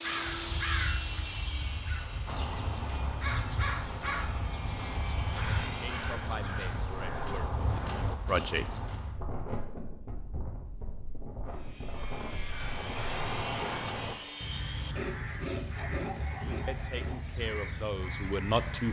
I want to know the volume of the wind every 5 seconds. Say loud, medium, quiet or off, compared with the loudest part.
loud, loud, loud, off.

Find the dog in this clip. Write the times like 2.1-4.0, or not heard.
15.8-17.3.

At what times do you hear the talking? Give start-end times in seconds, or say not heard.
5.7-8.7, 16.6-18.8.